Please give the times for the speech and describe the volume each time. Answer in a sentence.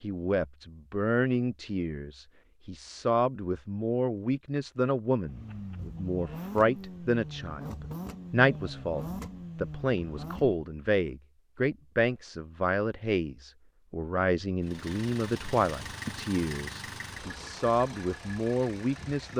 The speech can be heard from 0.0 to 19.3 s, at a steady volume.